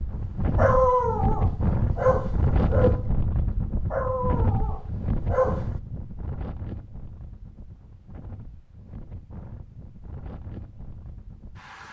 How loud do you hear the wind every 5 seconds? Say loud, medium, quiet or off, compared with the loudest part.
loud, medium, quiet.